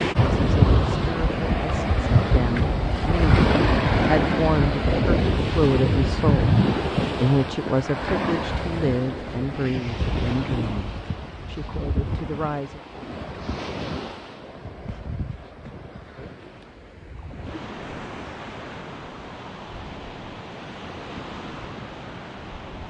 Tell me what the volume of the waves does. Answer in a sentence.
The loudness of the waves goes down.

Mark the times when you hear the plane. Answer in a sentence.
The plane can't be heard in this clip.